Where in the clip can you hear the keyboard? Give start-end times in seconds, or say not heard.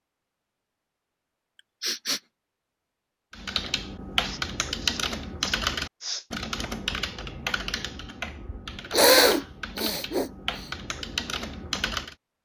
3.3-12.2.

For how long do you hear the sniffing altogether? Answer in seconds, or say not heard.
4 s.